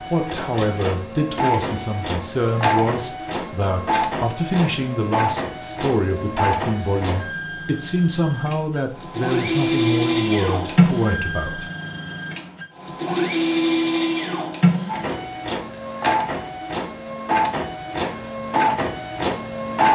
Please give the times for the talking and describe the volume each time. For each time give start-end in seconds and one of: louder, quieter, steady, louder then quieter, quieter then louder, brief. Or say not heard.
0.1-11.7 steady.